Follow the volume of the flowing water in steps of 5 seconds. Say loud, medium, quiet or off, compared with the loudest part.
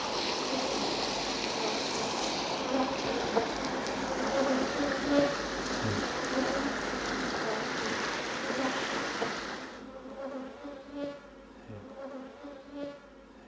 loud, loud, off.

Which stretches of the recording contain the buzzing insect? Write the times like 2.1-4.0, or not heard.
0.1-13.4.